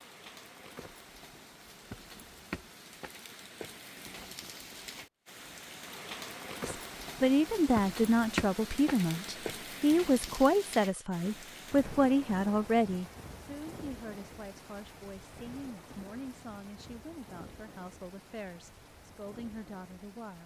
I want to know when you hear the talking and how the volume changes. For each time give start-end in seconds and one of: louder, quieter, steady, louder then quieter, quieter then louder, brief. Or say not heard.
6.6-20.4 quieter.